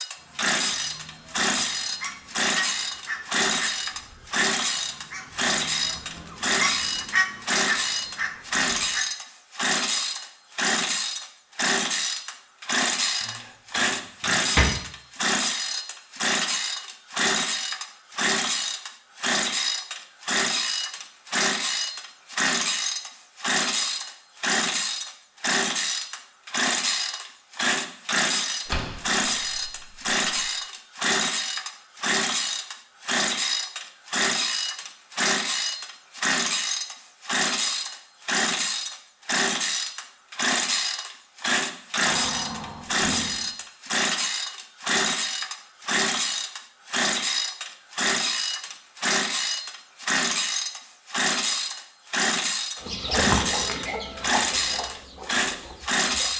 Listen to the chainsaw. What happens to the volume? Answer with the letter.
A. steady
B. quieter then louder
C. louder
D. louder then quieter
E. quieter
A.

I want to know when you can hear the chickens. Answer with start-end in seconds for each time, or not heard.
0.1-9.1, 52.8-56.3.